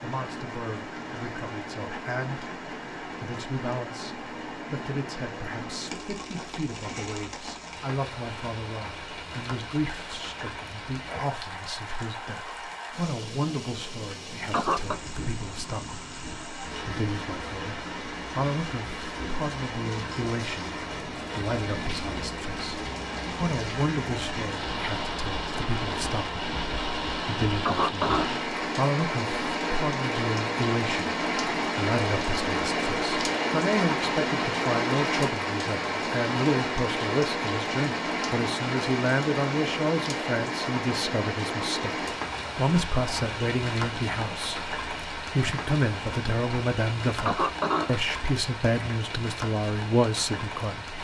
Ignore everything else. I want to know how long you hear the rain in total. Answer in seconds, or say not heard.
51 s.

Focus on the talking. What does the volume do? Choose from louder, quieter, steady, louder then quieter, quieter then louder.
louder.